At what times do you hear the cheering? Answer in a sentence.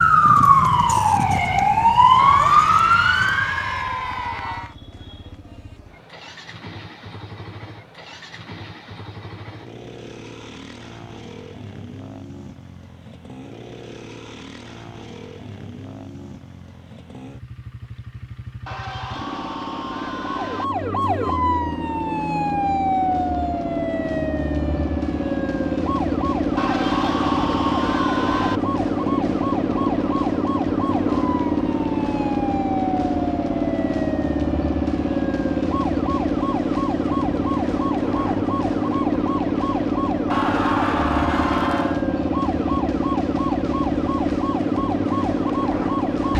You can hear the cheering from 2.1 to 4.8 s, from 18.6 to 20.6 s, from 26.6 to 28.6 s and from 40.3 to 42.0 s.